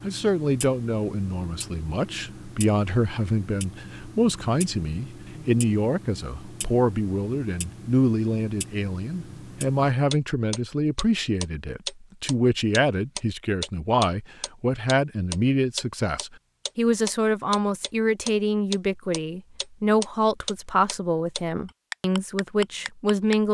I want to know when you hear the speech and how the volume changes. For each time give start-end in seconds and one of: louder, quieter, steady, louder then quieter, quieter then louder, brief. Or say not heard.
0.0-23.4 steady.